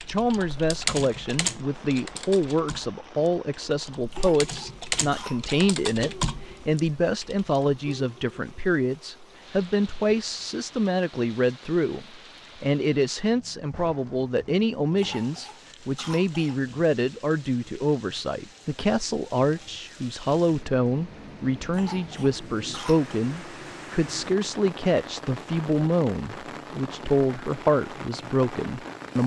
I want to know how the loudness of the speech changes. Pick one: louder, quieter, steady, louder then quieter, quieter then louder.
steady.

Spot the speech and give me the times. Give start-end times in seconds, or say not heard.
0.1-29.2.